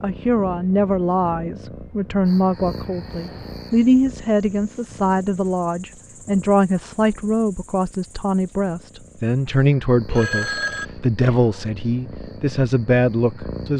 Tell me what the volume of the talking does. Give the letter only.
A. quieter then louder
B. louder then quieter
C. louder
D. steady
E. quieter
D.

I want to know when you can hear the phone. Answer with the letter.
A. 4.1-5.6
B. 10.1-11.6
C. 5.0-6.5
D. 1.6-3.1
B.